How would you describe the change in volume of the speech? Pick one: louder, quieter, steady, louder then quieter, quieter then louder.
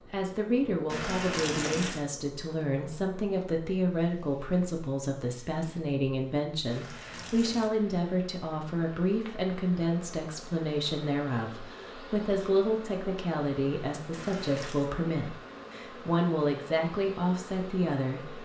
steady.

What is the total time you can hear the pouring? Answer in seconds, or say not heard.
3 s.